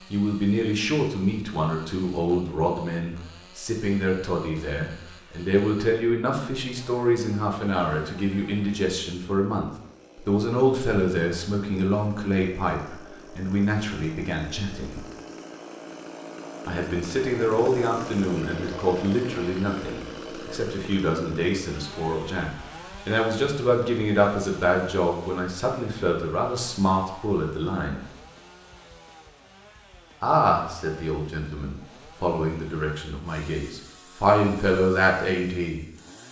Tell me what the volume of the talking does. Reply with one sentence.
The volume of the talking stays about the same.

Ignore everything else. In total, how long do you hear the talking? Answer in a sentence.
You can hear the talking for 32 seconds altogether.